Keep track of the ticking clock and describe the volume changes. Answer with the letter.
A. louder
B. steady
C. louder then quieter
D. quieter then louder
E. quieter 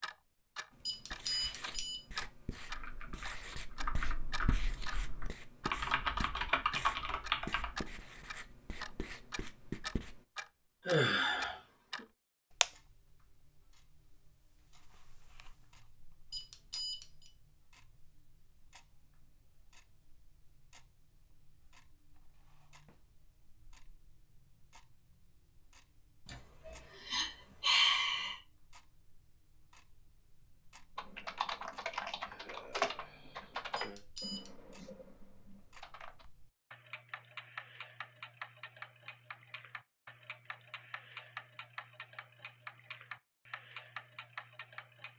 D.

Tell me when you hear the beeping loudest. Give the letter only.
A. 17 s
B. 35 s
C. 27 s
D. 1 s
D.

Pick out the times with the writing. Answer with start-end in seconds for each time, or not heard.
0.7-10.2.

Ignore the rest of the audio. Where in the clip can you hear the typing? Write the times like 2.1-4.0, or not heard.
2.6-7.9, 30.9-36.2.